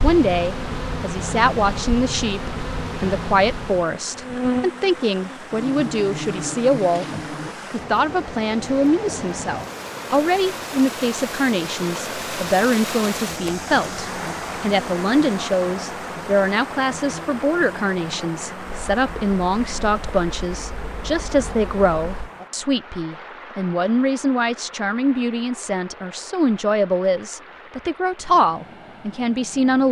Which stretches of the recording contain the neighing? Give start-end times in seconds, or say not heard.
not heard.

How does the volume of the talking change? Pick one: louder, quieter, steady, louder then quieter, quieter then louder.
steady.